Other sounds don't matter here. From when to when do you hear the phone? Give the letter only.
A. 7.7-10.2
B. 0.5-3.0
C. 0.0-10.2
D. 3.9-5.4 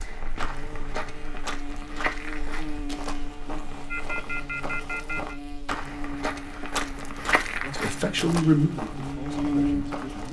D.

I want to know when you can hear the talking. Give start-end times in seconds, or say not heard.
7.7-10.2.